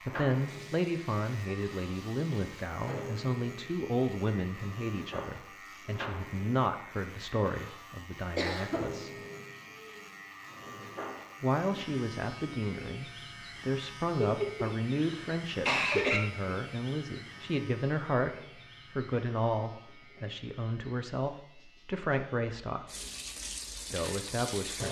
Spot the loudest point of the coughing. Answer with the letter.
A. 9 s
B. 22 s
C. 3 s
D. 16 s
D.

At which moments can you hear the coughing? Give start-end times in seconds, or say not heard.
8.3-8.8, 14.2-16.2.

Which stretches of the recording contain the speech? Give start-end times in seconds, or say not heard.
0.0-9.2, 11.4-22.9, 23.9-24.8.